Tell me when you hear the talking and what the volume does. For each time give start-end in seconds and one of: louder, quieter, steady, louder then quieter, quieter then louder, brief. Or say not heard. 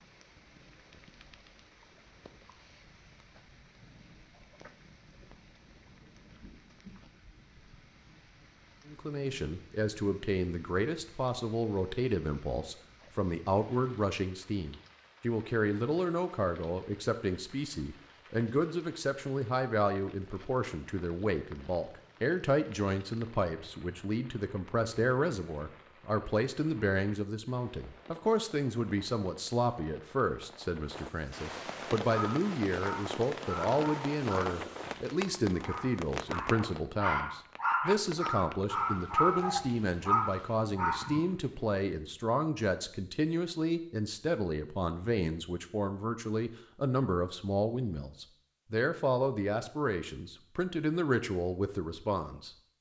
8.8-52.5 steady.